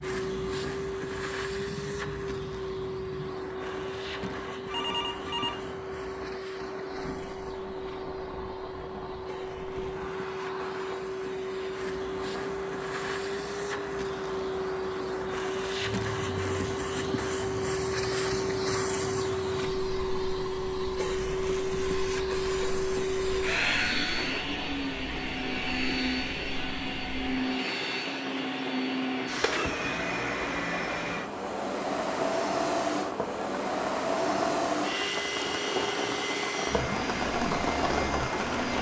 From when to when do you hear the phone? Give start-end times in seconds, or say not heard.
4.7-5.6.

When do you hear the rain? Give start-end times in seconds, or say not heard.
0.0-38.7.